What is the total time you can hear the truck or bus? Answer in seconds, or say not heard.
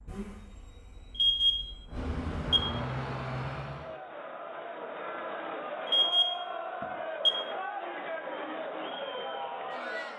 4 s.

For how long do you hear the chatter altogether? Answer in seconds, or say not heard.
7 s.